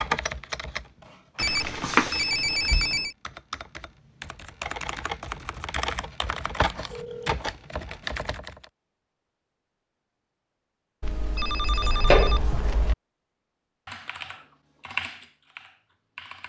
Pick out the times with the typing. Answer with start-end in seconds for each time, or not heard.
0.0-8.7, 13.8-16.4.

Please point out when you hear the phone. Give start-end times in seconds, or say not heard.
1.4-3.1, 6.2-7.3, 11.0-12.9.